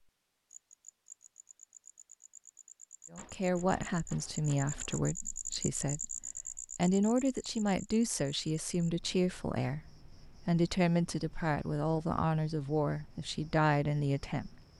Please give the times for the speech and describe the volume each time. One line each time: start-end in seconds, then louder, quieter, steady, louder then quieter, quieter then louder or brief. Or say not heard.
3.1-14.6 steady.